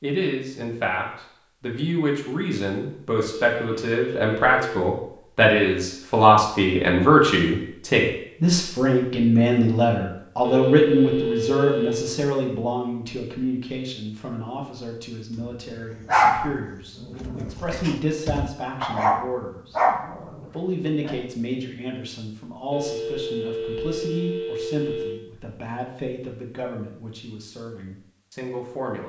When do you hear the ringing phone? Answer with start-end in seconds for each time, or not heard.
3.3-4.8, 10.4-12.2, 22.7-25.2.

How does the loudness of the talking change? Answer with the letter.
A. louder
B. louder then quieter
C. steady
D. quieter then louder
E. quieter
E.